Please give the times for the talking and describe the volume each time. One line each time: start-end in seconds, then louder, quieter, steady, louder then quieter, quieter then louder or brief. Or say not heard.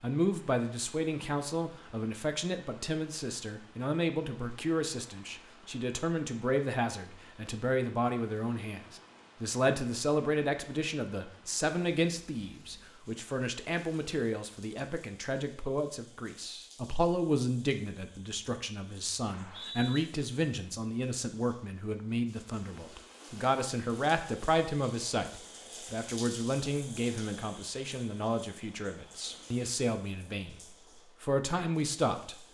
0.0-32.5 steady.